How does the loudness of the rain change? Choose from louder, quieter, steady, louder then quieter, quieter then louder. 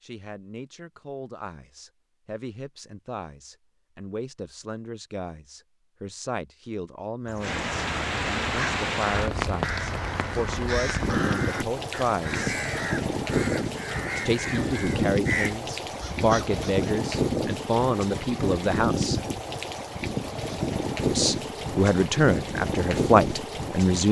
steady.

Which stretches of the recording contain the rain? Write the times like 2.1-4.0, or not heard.
7.4-24.0.